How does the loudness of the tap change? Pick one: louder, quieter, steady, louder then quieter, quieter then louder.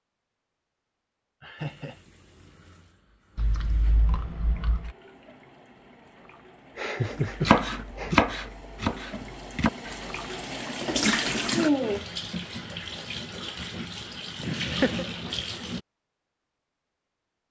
louder then quieter.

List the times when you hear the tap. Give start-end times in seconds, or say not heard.
1.6-15.8.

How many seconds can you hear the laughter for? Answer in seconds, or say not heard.
3 s.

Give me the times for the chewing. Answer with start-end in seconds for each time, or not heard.
3.4-5.0.